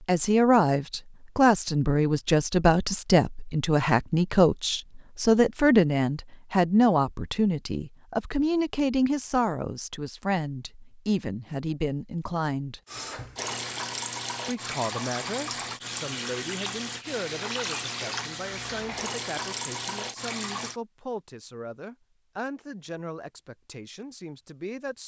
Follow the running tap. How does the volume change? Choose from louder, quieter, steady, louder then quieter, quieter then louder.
steady.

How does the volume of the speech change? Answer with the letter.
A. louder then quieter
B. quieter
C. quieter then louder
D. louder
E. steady
B.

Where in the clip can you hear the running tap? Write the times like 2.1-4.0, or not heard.
12.8-20.8.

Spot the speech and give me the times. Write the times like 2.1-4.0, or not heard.
0.1-12.8, 14.4-25.0.